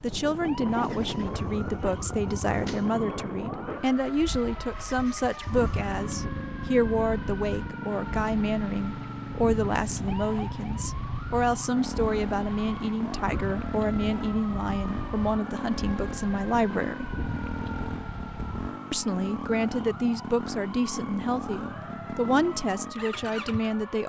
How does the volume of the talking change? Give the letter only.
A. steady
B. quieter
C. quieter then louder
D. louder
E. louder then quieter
A.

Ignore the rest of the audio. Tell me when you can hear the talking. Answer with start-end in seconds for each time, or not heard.
0.0-17.1, 18.9-24.0.